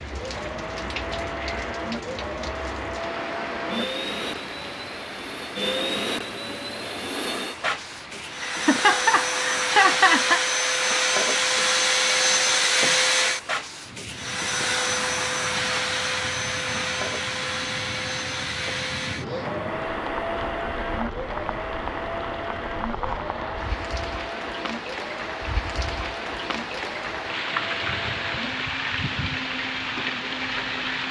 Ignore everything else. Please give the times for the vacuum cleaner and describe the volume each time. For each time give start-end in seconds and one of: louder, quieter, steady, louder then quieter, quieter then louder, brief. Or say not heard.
0.0-31.0 louder then quieter.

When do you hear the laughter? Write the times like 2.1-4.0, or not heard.
8.4-10.4.